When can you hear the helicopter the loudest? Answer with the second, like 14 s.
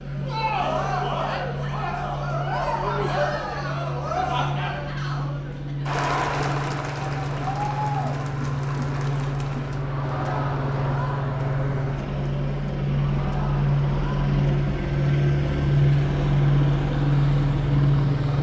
16 s.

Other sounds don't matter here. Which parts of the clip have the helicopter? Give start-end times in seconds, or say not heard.
0.0-18.3.